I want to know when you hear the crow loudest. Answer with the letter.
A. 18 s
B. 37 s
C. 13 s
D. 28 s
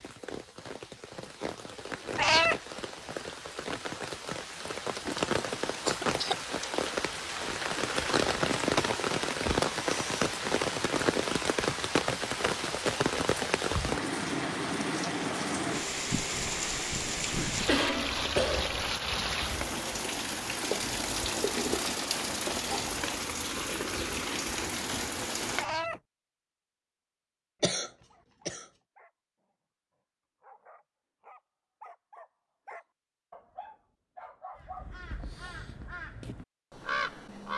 B.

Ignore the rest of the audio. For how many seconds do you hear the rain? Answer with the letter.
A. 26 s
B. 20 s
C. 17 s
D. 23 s
A.